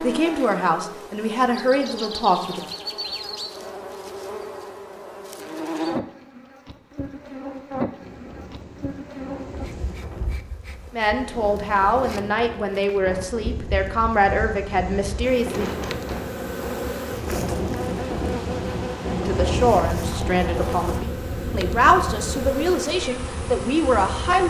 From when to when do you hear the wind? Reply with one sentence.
You can hear the wind from 8.0 to 24.4 s.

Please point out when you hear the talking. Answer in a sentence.
The talking can be heard from 0.0 to 2.6 s, from 10.9 to 15.8 s and from 19.2 to 24.4 s.